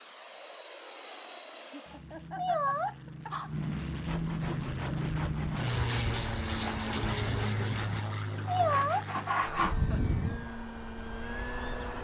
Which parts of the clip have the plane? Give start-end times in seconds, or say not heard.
0.0-11.9.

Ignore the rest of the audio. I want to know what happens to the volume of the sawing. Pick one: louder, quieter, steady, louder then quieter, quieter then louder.
louder.